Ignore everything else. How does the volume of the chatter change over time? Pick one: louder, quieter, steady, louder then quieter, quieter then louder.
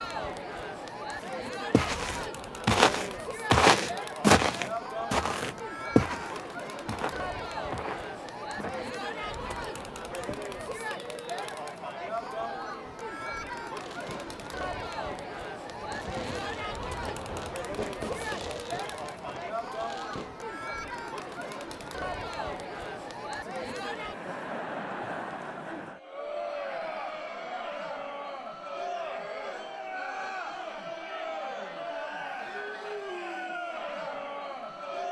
steady.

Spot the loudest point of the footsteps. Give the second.
4 s.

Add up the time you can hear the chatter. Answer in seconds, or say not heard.
35 s.